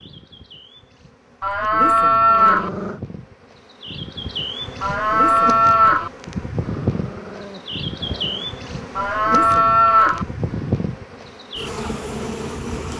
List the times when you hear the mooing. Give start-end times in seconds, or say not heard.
1.4-2.7, 4.8-6.1, 8.9-10.2.